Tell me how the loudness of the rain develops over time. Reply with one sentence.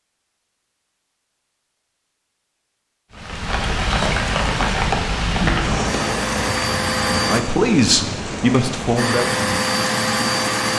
The volume of the rain goes down.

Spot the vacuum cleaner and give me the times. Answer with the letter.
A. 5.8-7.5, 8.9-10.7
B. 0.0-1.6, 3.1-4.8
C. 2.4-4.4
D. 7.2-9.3
A.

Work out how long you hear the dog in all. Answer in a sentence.
The dog can't be heard in this clip.